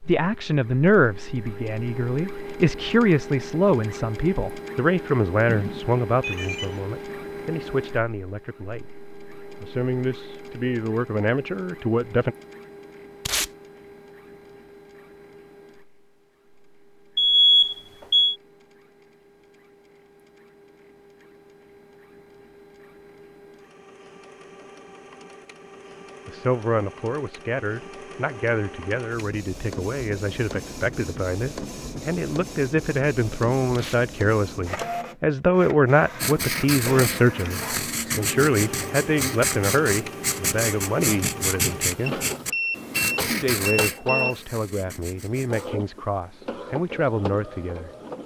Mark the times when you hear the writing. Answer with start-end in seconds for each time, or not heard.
36.1-45.8.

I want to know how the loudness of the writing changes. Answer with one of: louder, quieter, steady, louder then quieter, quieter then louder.
quieter.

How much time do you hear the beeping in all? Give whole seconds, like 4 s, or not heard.
5 s.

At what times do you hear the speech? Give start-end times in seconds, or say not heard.
0.1-8.9, 9.6-12.3, 26.2-42.2, 43.2-47.9.